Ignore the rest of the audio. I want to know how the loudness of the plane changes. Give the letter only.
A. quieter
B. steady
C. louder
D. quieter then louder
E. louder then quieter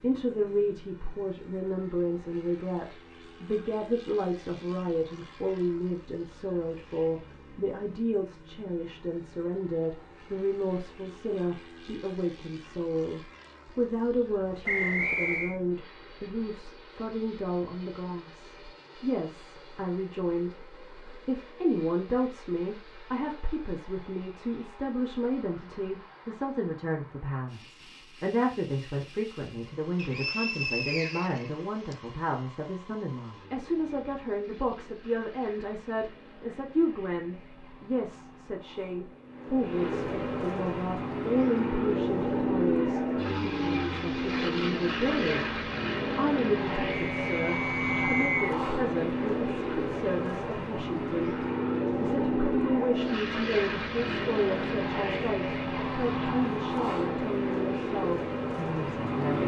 C.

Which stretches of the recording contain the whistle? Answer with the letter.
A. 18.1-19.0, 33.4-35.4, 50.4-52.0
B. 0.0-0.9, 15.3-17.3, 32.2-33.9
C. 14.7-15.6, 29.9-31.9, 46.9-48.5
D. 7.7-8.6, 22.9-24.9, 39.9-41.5
C.